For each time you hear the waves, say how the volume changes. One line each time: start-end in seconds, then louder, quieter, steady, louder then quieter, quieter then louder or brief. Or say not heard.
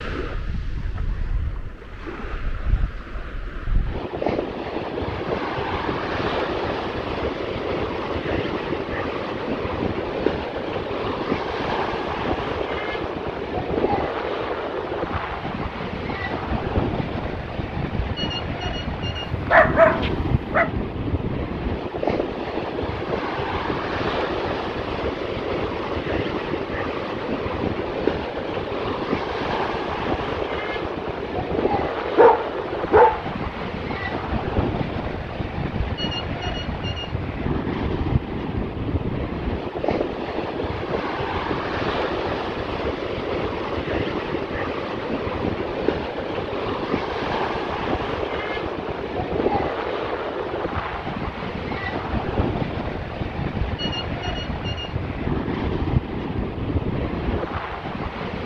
0.0-58.4 steady.